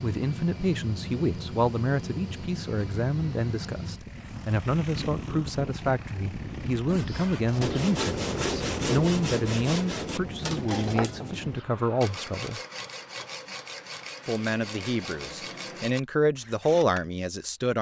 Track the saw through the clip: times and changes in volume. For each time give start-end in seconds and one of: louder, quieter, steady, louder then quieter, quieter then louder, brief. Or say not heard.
6.8-17.1 quieter.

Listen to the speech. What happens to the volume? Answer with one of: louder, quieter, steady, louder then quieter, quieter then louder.
steady.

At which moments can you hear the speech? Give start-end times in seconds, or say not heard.
0.0-12.6, 14.2-17.7.